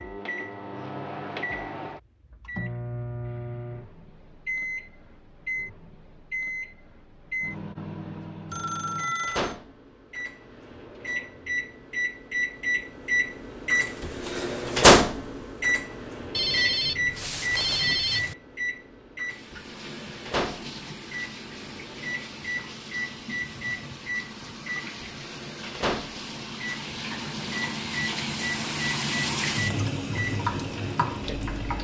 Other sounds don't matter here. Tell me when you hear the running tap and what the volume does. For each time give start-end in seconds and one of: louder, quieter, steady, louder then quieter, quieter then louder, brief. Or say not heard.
19.2-31.8 louder.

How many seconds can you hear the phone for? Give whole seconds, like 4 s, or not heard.
3 s.